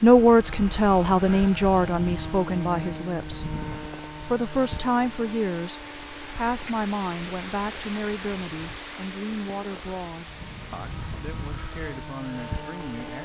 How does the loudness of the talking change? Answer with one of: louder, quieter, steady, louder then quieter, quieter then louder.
quieter.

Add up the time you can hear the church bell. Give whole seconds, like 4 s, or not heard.
not heard.